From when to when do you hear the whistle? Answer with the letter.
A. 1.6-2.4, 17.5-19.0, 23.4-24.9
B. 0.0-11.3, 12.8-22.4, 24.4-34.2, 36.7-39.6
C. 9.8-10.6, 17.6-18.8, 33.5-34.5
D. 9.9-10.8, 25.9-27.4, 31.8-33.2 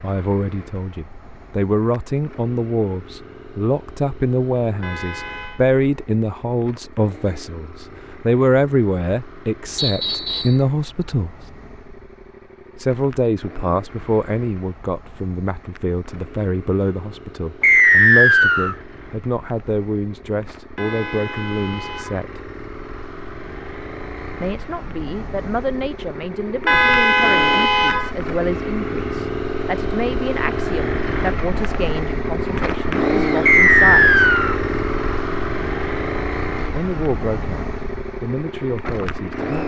C.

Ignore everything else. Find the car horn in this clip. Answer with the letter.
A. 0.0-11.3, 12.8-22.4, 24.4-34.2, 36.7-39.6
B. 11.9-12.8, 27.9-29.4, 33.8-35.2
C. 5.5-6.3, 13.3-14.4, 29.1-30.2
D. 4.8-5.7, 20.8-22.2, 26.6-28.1
D.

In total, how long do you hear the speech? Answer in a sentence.
You can hear the speech for 34 seconds altogether.